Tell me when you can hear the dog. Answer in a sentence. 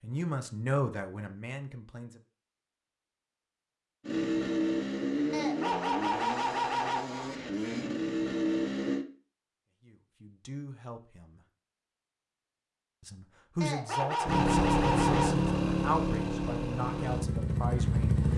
The dog can be heard from 5.3 to 7.3 s and from 13.6 to 15.6 s.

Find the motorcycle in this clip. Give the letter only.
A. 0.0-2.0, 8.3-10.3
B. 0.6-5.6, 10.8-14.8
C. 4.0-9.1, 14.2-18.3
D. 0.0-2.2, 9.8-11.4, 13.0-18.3
C.